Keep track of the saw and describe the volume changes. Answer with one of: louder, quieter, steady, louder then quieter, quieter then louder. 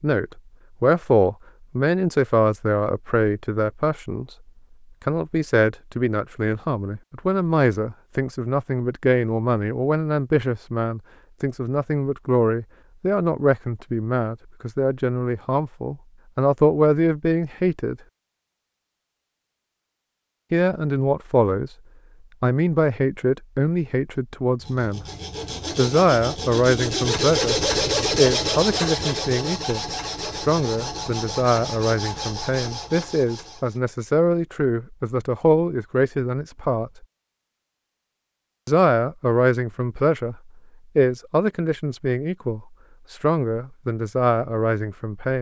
louder then quieter.